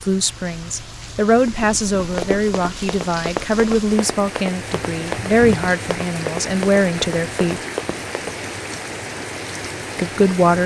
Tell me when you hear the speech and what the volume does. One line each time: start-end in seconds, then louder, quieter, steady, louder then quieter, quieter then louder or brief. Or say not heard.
0.0-7.6 steady
9.9-10.6 brief.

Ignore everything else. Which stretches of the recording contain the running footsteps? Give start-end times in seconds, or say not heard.
2.1-8.5.